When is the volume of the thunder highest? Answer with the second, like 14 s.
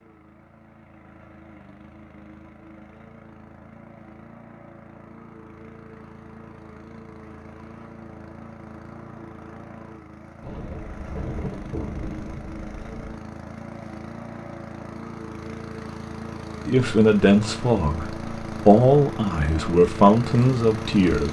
11 s.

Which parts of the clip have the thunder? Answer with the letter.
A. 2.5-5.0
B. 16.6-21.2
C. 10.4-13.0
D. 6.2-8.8
C.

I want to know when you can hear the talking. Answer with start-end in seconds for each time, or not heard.
16.6-21.2.